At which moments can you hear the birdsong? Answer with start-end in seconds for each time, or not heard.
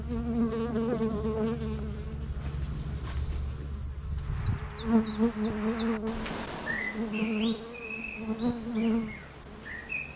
4.2-10.1.